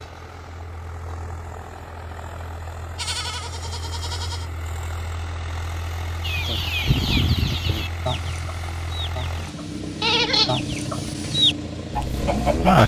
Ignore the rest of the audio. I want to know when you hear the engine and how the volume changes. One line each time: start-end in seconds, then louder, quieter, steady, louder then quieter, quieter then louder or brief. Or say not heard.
0.0-12.8 louder.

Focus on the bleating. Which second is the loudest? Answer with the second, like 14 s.
10 s.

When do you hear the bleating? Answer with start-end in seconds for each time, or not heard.
3.0-4.5, 10.0-10.6.